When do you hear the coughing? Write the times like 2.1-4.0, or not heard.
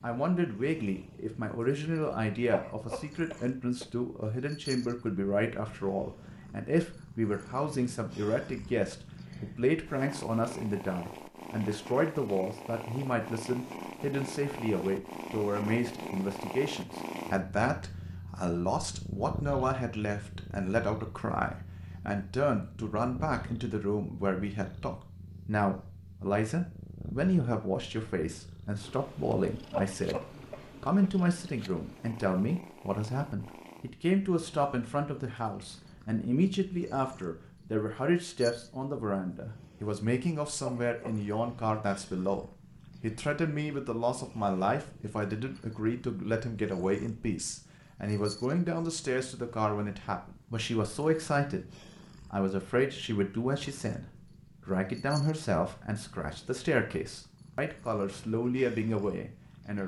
2.5-3.9, 29.7-31.1, 40.6-41.2.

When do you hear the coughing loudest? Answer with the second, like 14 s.
30 s.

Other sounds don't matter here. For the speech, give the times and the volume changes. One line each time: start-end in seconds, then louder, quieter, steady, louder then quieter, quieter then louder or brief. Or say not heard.
0.0-59.8 steady.